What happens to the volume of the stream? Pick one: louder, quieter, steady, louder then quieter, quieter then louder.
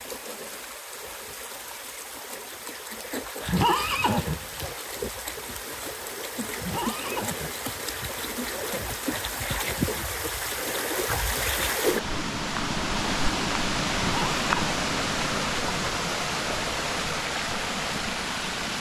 louder.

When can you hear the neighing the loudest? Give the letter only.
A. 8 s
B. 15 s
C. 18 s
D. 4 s
D.